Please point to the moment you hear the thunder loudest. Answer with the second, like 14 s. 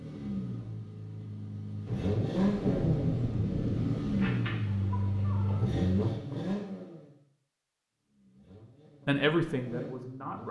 3 s.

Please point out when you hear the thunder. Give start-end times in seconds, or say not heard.
1.9-4.2.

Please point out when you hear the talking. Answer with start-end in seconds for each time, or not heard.
9.1-10.4.